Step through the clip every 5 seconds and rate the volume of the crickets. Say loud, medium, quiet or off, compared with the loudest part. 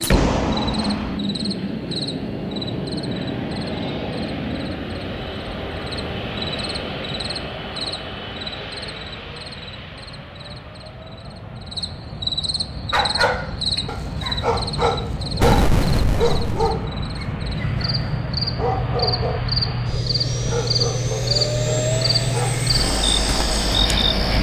quiet, quiet, medium, medium, loud.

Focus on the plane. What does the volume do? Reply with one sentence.
The loudness of the plane goes down, then up.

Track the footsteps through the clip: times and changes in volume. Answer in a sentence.
You can't hear the footsteps here.